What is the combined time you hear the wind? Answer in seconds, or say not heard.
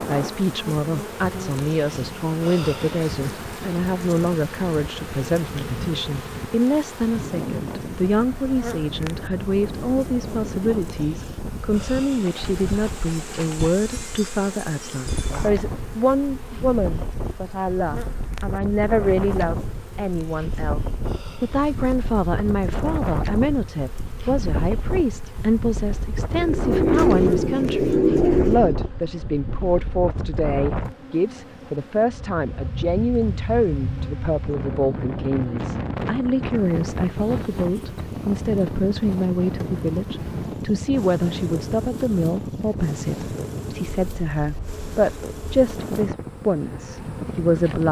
48 s.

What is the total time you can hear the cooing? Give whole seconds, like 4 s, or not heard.
4 s.